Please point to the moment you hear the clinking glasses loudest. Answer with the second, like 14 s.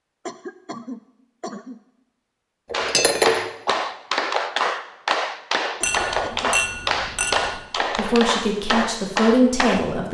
3 s.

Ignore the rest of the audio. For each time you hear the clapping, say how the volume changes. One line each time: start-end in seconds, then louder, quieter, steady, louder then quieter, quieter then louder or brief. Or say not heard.
2.7-9.8 steady.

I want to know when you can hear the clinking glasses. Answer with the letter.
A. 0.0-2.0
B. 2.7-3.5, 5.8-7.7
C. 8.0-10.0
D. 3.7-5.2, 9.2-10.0
B.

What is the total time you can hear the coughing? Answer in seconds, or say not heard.
2 s.